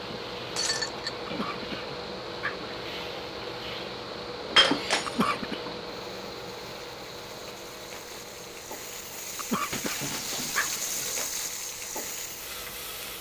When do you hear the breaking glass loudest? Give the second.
5 s.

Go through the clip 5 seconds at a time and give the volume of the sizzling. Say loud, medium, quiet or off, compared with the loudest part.
medium, medium, loud.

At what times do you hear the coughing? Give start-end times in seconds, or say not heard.
1.2-2.7, 5.0-5.6, 9.3-10.8.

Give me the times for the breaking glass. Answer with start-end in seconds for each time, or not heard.
0.6-1.1, 4.5-5.3, 9.7-11.6.